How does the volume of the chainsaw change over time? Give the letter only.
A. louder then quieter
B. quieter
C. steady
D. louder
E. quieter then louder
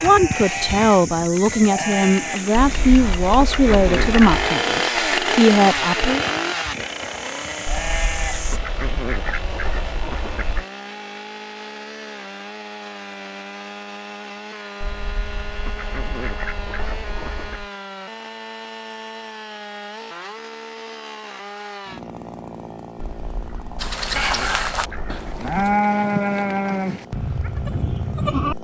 B.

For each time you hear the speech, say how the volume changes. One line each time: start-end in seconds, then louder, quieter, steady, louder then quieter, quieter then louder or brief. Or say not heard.
0.0-6.2 steady.